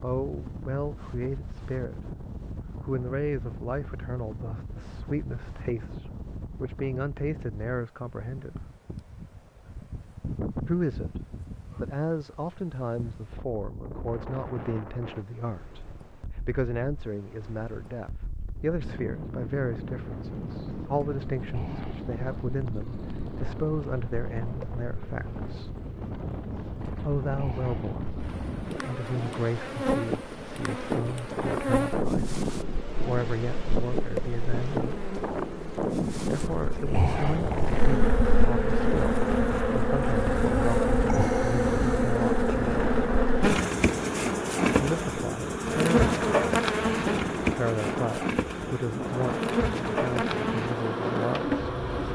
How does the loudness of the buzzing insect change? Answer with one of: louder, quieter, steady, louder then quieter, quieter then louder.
louder.